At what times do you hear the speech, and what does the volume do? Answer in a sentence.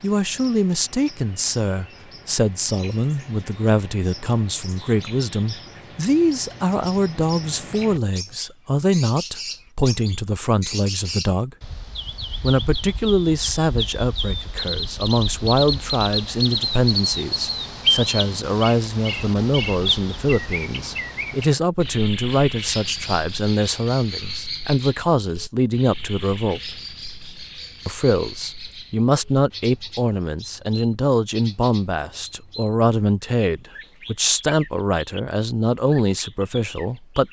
The speech can be heard from 0.0 to 11.6 s, at a steady volume; from 12.4 to 26.8 s, at a steady volume; and from 27.9 to 37.2 s, at a steady volume.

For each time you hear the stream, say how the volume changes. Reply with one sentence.
You can't hear the stream here.